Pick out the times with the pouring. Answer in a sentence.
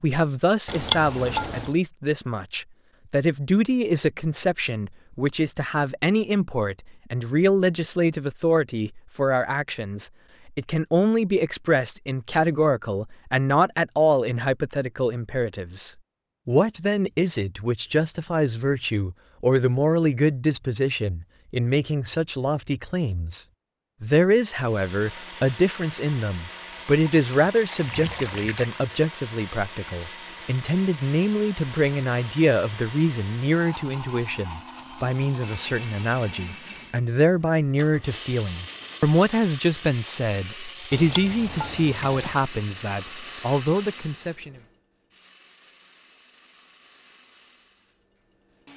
You can hear the pouring from 0.7 to 1.8 s, from 27.1 to 28.9 s and from 40.9 to 42.4 s.